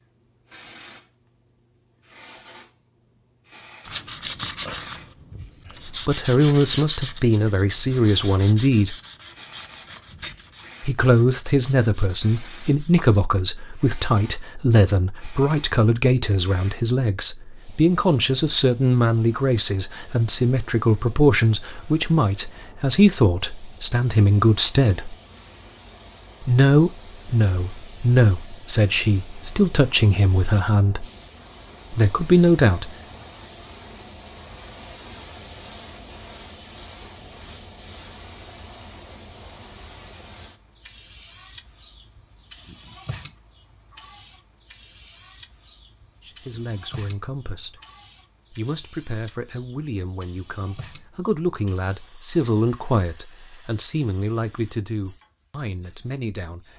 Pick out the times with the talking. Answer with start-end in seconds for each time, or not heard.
6.0-8.9, 10.8-25.1, 26.4-31.1, 31.9-32.9, 46.2-47.8, 48.5-56.6.